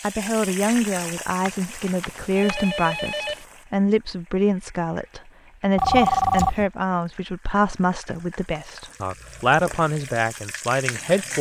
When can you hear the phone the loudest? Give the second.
6 s.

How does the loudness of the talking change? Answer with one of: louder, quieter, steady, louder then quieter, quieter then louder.
steady.